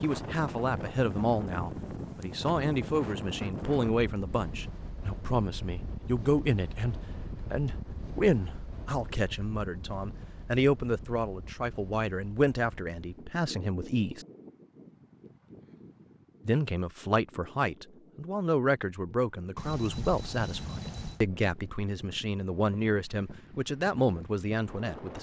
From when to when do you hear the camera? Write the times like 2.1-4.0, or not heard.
19.6-21.2.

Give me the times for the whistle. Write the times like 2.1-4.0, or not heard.
not heard.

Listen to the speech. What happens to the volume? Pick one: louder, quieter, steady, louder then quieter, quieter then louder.
steady.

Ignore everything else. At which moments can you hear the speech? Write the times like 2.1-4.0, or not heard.
0.0-14.2, 16.4-25.1.